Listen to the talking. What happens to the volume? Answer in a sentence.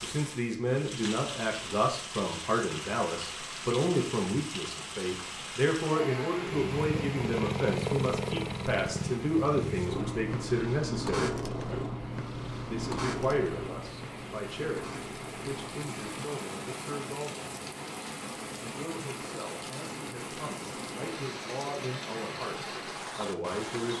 The loudness of the talking goes down.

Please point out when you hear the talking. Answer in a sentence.
You can hear the talking from 0.0 to 11.3 s, from 12.7 to 17.5 s and from 18.6 to 23.9 s.